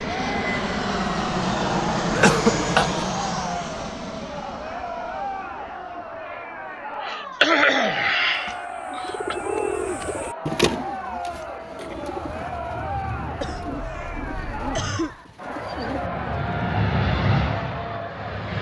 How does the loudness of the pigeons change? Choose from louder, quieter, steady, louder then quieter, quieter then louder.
quieter.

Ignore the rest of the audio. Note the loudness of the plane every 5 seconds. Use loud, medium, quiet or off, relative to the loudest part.
loud, quiet, quiet, loud.